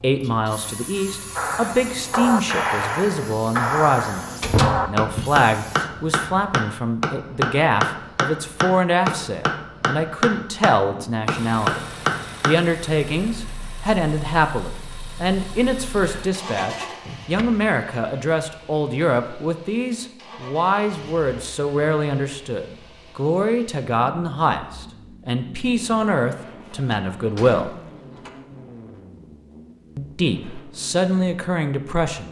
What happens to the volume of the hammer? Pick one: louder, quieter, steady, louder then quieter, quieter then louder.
steady.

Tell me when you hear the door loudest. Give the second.
5 s.